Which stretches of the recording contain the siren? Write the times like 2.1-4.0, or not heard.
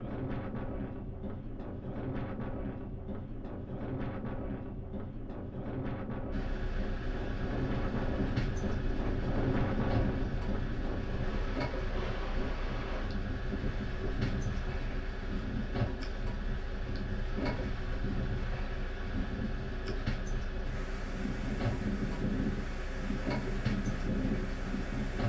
not heard.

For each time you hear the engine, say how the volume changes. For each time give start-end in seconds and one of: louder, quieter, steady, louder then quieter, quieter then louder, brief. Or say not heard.
6.3-25.2 steady.